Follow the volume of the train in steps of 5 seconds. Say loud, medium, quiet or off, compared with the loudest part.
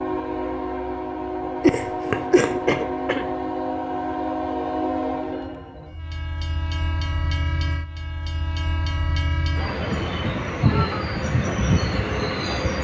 loud, medium, loud.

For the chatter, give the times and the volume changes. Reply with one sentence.
The chatter can't be heard in this clip.